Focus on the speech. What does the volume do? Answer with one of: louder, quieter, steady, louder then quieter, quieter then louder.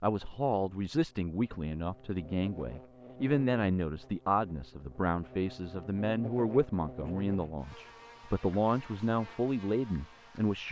steady.